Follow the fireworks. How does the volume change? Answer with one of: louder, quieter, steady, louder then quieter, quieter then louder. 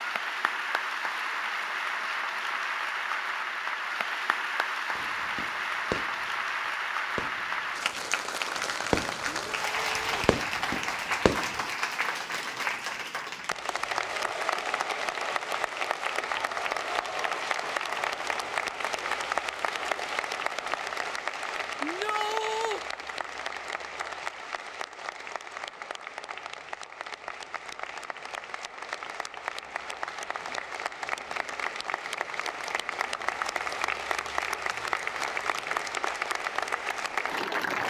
quieter then louder.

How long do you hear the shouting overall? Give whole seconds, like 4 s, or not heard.
2 s.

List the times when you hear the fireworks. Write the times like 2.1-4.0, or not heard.
5.0-11.6.